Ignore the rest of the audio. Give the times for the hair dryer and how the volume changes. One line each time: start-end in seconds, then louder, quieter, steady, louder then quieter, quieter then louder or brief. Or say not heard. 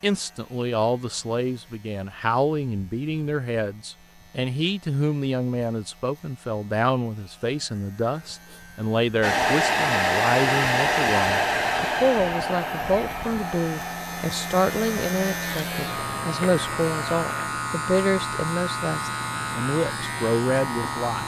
9.2-17.5 quieter.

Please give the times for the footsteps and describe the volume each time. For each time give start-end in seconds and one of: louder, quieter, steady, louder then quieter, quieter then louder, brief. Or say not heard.
not heard.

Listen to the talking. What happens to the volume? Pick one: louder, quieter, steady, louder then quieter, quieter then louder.
steady.